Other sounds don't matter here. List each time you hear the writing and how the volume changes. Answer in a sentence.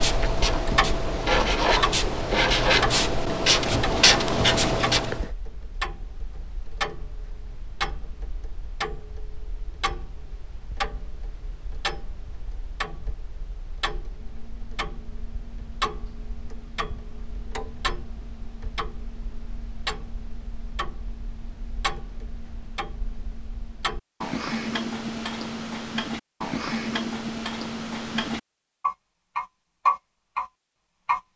The writing can be heard from 0.0 to 5.3 s, getting louder.